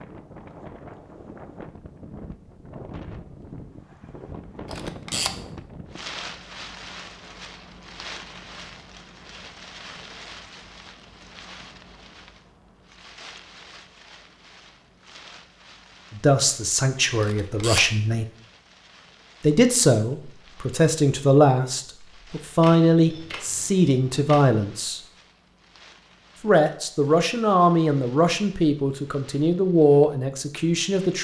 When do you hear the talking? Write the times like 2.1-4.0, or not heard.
16.1-18.2, 19.4-25.0, 26.4-31.1.